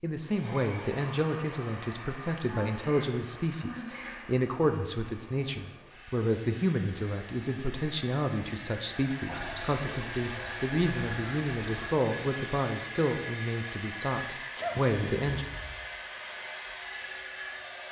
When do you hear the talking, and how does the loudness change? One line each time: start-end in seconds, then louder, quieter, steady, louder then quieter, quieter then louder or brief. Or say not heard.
0.0-15.4 steady.